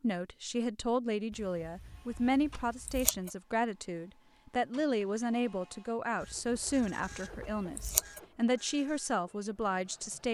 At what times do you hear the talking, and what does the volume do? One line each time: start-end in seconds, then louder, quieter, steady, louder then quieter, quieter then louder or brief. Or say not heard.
0.0-10.2 steady.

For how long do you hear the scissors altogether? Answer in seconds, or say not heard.
4 s.